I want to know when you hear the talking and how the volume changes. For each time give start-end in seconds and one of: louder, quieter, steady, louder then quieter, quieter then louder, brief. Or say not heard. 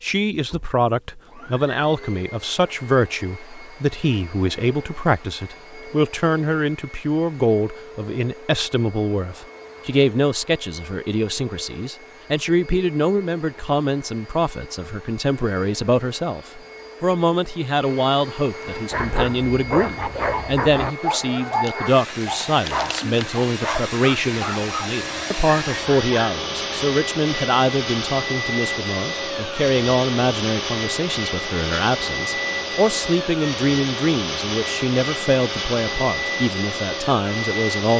0.0-37.9 steady.